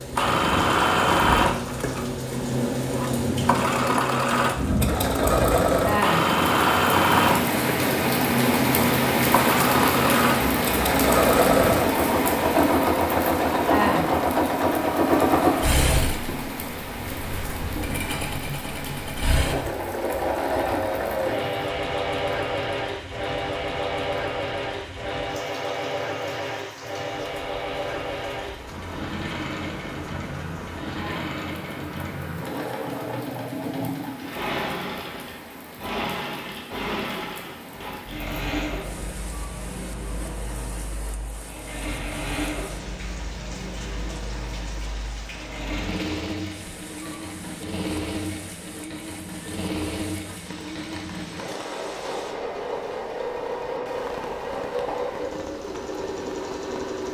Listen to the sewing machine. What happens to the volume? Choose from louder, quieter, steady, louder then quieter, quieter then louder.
quieter.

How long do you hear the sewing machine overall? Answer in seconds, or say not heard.
57 s.